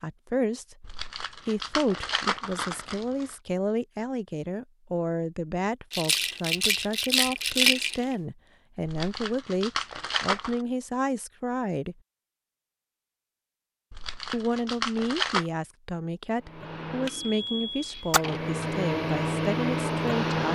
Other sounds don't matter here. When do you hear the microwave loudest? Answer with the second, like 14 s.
20 s.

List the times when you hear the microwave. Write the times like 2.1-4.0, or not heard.
16.4-20.5.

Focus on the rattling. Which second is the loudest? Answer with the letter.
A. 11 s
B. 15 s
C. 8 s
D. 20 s
C.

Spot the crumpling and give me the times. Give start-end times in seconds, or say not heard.
0.8-3.4, 8.8-10.7, 13.9-15.5.